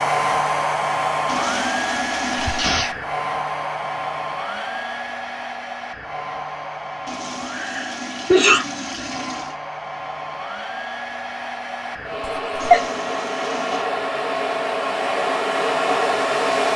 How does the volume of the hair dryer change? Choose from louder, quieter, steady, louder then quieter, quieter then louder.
quieter then louder.